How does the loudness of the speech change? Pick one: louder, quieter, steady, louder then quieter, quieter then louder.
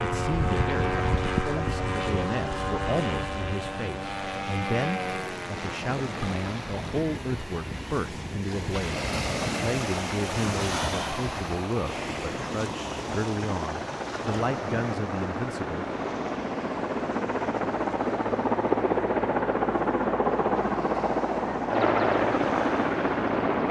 steady.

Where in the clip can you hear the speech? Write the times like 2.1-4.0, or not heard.
0.0-15.8.